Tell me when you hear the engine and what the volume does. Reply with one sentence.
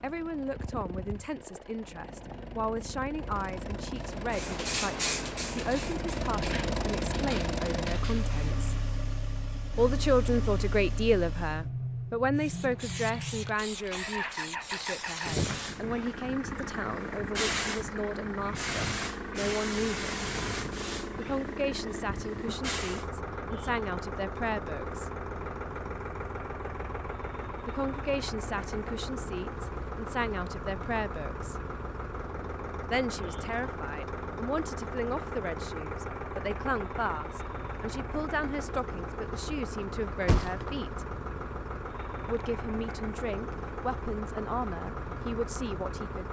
The engine can be heard from 0.0 to 46.2 s, at a steady volume.